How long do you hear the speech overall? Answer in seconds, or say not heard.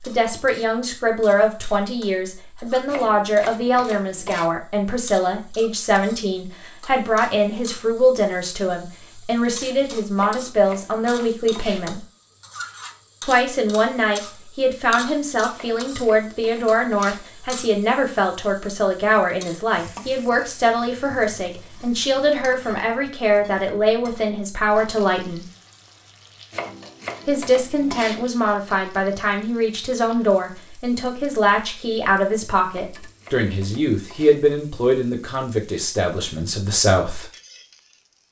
34 s.